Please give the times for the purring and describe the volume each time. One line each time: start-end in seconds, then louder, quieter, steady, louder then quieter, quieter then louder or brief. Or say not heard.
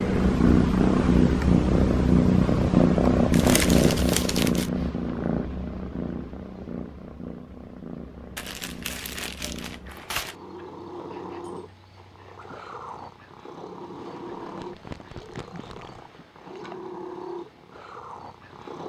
0.0-18.8 quieter.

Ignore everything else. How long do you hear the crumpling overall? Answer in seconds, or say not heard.
5 s.